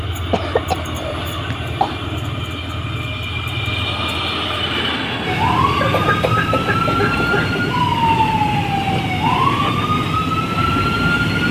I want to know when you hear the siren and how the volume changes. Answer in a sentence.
The siren can be heard from 5.2 to 11.4 s, at a steady volume.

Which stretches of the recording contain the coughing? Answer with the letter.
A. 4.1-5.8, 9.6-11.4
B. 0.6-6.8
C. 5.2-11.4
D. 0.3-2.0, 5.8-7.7
D.